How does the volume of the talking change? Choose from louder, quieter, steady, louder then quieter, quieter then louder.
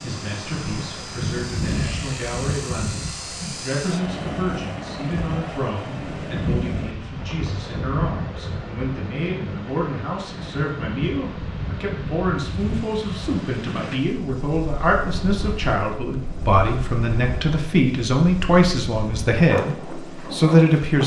louder.